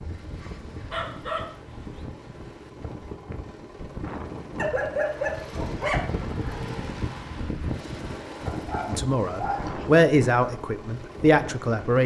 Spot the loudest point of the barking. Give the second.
5 s.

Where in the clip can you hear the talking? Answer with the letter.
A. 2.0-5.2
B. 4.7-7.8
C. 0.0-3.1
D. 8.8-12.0
D.